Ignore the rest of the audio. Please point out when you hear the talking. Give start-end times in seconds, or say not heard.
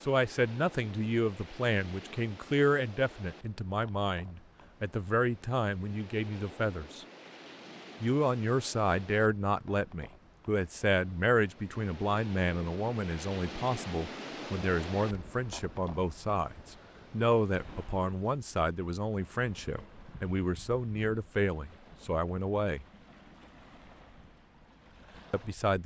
0.0-7.0, 8.0-22.9, 25.3-25.8.